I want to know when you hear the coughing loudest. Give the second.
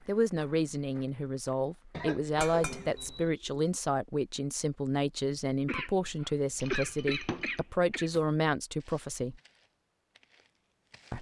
7 s.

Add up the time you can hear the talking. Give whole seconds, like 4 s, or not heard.
9 s.